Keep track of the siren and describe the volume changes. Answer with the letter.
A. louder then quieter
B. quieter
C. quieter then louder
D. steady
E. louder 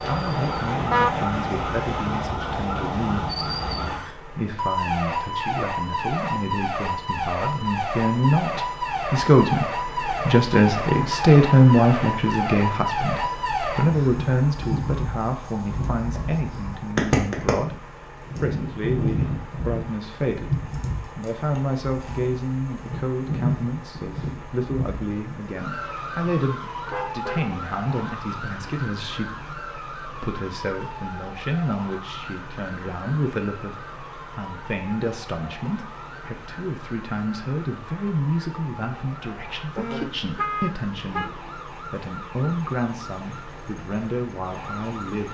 B.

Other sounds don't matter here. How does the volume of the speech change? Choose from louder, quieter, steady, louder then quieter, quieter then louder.
louder then quieter.